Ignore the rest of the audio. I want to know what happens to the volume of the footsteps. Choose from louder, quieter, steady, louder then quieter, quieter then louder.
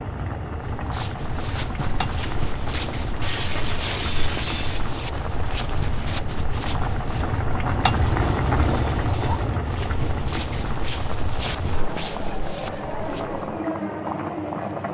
steady.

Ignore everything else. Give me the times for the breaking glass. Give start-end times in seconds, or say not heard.
3.2-4.9, 7.8-9.6.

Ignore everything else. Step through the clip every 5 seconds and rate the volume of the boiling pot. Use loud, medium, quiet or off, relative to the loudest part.
medium, loud, loud.